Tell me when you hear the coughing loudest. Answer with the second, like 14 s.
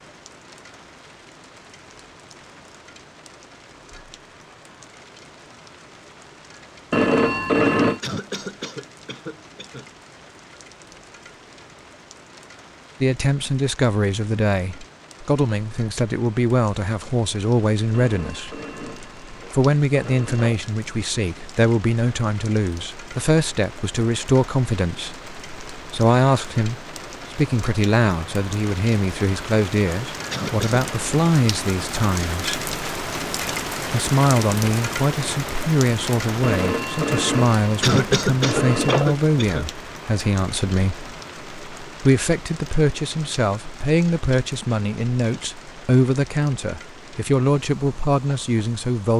38 s.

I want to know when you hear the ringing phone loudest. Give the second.
8 s.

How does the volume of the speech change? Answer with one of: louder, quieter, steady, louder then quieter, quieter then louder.
steady.